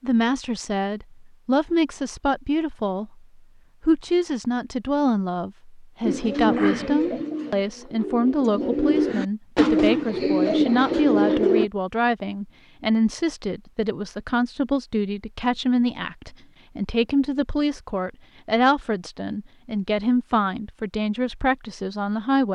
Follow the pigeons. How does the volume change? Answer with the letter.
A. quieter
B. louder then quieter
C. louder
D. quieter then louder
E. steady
D.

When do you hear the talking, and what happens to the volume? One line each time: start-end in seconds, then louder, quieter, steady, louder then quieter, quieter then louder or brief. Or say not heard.
0.0-22.4 steady.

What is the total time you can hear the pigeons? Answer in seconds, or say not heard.
6 s.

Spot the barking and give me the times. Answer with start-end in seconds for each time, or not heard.
not heard.